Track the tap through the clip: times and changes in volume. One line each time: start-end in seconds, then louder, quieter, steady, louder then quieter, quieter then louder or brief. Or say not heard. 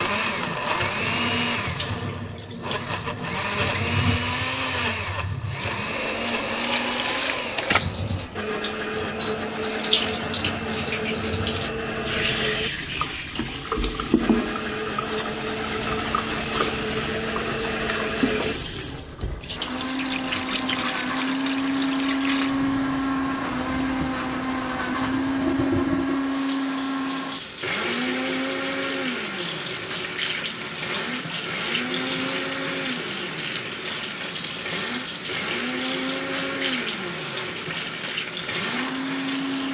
0.0-39.6 steady.